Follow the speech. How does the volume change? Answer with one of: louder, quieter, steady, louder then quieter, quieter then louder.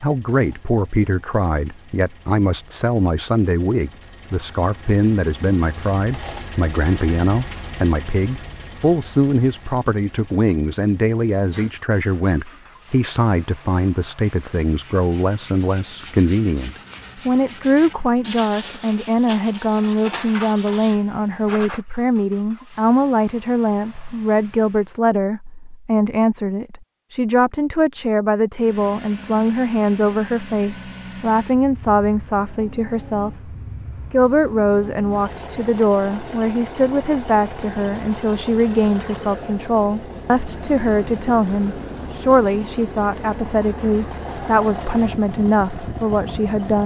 steady.